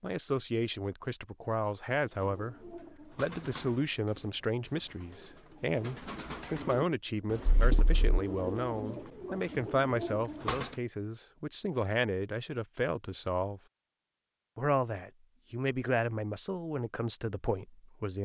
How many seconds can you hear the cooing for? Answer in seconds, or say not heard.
9 s.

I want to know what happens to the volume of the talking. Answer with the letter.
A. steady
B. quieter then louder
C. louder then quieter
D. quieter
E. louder
A.